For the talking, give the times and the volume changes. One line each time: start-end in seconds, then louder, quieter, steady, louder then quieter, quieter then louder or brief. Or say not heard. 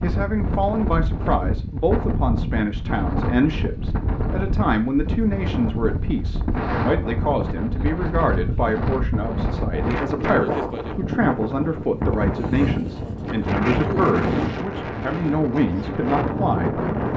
0.0-16.8 steady.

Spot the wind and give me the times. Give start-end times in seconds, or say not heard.
0.0-17.1.